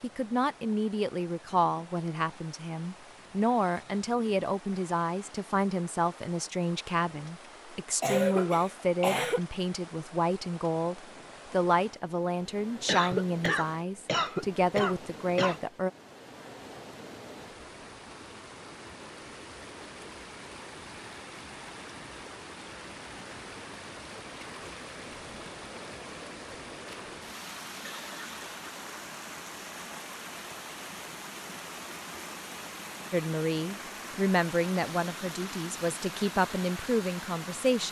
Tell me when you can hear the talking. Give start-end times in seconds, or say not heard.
0.0-15.9, 33.1-37.8.